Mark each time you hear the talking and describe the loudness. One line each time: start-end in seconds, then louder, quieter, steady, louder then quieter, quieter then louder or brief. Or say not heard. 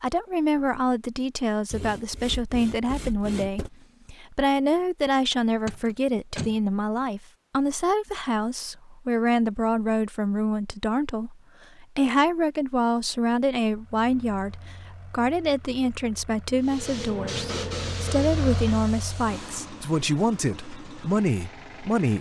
0.0-22.1 steady.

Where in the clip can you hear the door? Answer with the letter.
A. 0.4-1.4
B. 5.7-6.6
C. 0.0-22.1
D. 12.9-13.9
B.